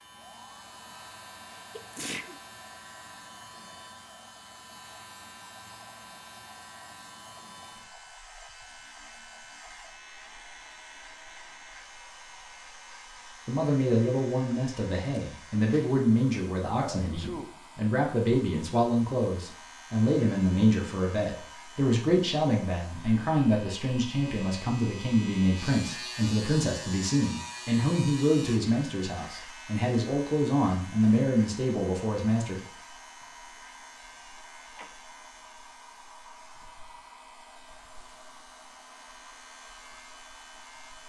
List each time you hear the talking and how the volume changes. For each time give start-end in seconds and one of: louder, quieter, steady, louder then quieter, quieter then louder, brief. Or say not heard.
13.4-32.6 steady.